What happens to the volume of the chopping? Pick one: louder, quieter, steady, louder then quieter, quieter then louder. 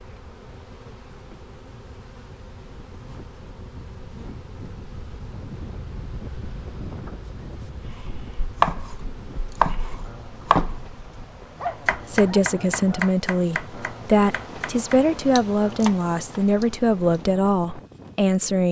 quieter.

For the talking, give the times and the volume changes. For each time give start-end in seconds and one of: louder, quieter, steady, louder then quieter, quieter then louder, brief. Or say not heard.
12.1-18.6 steady.